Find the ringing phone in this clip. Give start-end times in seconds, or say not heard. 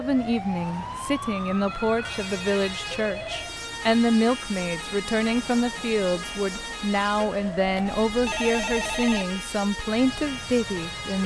1.6-3.5, 7.7-9.2.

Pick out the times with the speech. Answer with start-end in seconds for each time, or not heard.
0.0-11.2.